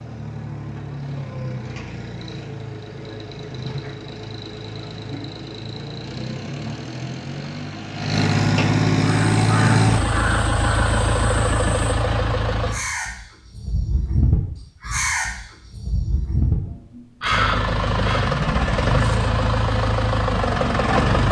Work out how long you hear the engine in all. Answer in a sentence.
You can hear the engine for 17 seconds altogether.